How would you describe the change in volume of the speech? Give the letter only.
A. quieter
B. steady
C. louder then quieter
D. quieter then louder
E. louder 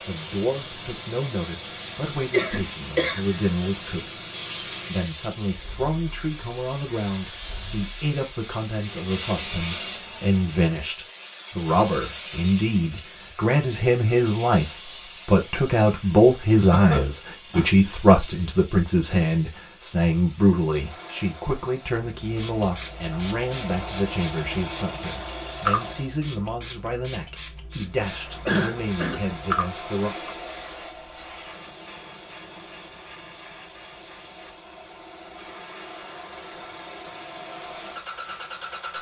C.